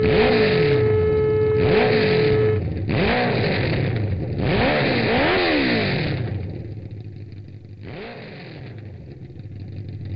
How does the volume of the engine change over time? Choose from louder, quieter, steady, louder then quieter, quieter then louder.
quieter.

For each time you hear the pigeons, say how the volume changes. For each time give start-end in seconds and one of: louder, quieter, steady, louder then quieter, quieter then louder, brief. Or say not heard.
not heard.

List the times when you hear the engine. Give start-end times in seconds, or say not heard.
0.0-10.1.